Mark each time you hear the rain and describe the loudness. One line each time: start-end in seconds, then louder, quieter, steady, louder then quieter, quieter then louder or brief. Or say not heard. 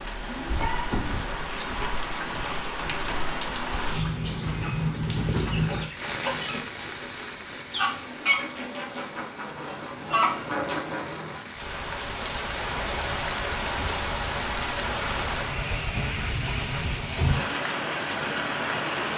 0.0-19.1 quieter then louder.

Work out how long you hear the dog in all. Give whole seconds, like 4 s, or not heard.
not heard.